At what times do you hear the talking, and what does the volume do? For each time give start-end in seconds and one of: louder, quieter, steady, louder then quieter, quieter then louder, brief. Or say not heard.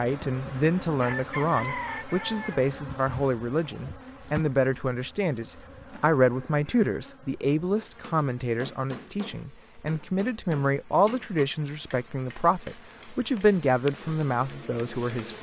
0.0-15.3 steady.